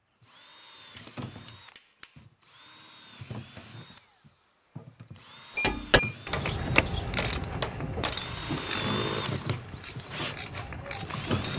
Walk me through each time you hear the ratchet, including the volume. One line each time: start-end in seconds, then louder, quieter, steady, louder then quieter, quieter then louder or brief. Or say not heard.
5.5-11.5 quieter then louder.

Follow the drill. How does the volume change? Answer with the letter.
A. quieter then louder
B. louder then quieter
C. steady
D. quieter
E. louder
E.